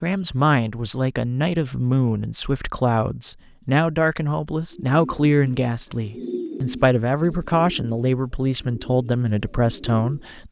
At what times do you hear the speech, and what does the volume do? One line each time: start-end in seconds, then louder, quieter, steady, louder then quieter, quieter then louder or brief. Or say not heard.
0.0-10.4 steady.